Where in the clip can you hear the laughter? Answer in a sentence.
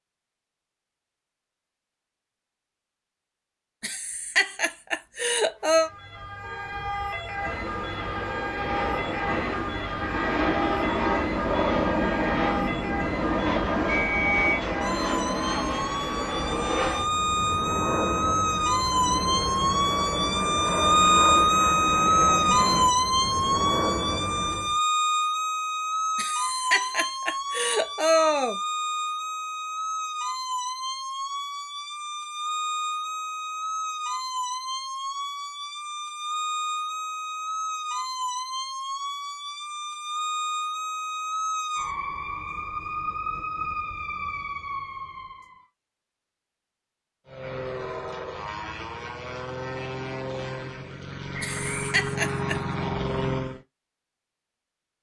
The laughter can be heard from 3.8 to 5.9 s, from 26.1 to 28.6 s and from 51.4 to 52.6 s.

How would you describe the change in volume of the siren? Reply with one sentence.
The loudness of the siren goes up, then down.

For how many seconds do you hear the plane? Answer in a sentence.
You can hear the plane for 24 seconds altogether.